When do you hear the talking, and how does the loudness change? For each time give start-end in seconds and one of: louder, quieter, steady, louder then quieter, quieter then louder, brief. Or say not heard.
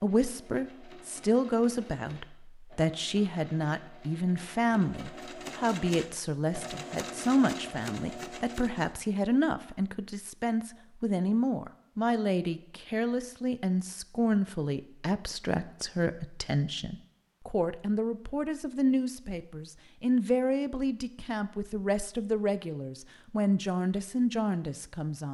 0.0-25.2 steady.